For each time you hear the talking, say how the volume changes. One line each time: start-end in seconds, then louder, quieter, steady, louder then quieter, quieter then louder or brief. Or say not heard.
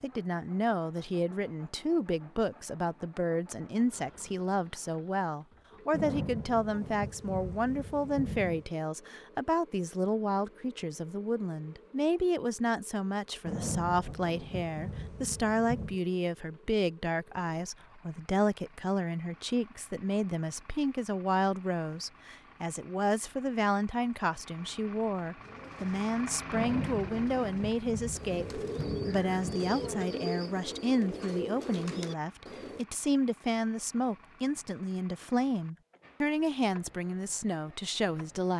0.0-38.5 steady.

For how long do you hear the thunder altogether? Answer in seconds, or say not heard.
9 s.